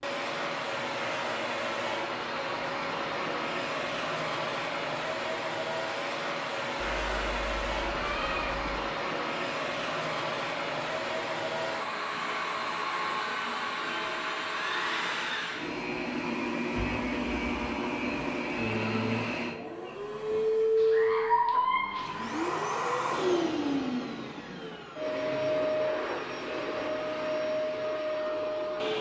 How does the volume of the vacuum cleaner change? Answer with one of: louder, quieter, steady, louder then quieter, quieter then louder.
steady.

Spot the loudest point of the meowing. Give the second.
21 s.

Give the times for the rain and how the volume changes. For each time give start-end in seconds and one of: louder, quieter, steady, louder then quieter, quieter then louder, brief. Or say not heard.
not heard.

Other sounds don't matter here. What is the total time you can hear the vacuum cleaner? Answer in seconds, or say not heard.
29 s.